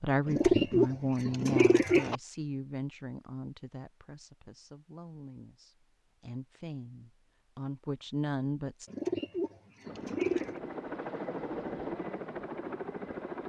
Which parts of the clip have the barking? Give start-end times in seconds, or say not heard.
not heard.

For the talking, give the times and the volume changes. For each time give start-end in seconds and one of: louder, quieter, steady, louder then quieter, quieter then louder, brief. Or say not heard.
0.0-8.9 quieter then louder.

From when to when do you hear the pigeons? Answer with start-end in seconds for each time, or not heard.
0.2-2.1, 8.8-10.6.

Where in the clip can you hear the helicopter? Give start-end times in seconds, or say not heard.
9.8-13.4.